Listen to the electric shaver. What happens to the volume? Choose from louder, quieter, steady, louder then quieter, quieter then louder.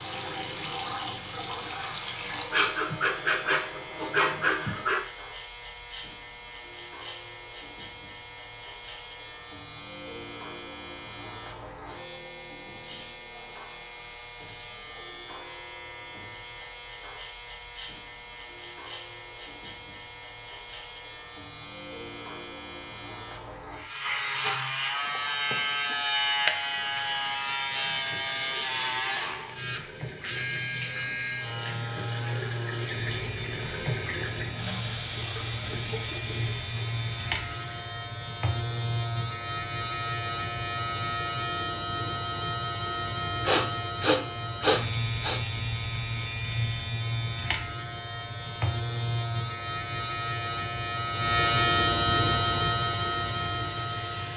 louder.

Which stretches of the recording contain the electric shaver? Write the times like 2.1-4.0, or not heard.
0.0-54.3.